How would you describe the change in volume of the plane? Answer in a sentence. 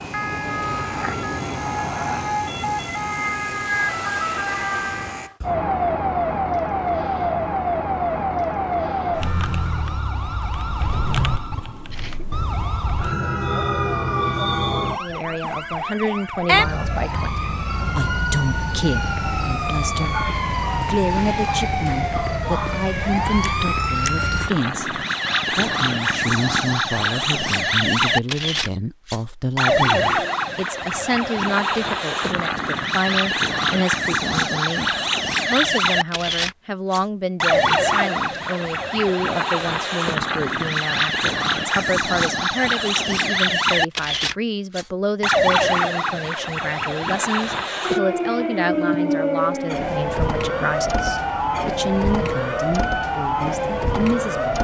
The loudness of the plane goes down.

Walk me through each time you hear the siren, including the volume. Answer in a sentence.
The siren can be heard from 0.0 to 54.5 s, at a steady volume.